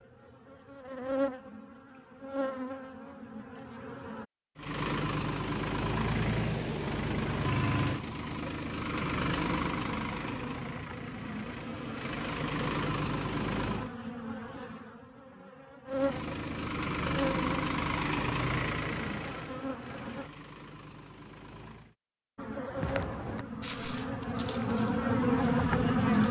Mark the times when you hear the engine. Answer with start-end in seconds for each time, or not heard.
4.5-13.9, 15.9-21.9.